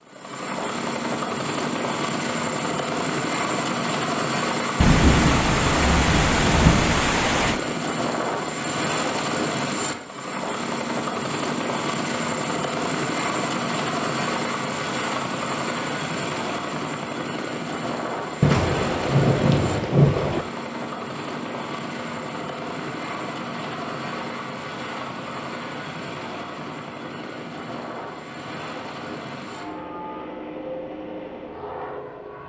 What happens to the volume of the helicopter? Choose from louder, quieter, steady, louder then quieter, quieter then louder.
quieter.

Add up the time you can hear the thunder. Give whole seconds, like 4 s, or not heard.
5 s.